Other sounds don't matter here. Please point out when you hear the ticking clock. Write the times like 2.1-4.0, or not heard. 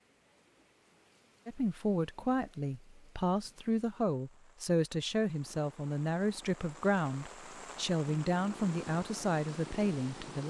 not heard.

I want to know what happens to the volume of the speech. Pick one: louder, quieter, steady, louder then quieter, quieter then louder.
steady.